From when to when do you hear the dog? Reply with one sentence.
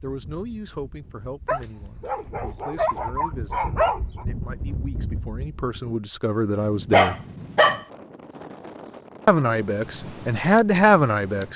The dog can be heard from 1.4 to 4.2 s and from 6.9 to 7.8 s.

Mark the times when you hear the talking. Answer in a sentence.
You can hear the talking from 0.0 to 7.2 s and from 9.2 to 11.5 s.